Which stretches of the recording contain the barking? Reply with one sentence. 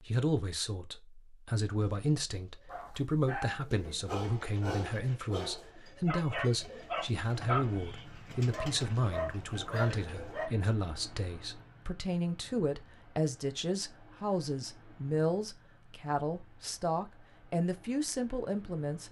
You can hear the barking from 2.6 to 10.5 s.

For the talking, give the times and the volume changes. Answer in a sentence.
The talking can be heard from 0.0 to 19.0 s, at a steady volume.